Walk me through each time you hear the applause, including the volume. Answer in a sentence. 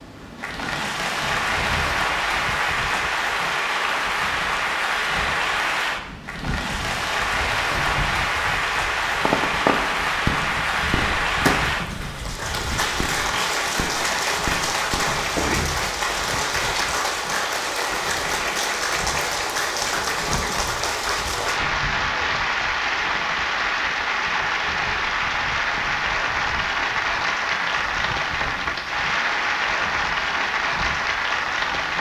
You can hear the applause from 0.0 to 31.9 s, at a steady volume.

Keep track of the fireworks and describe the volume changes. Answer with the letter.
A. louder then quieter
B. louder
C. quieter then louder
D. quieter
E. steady
C.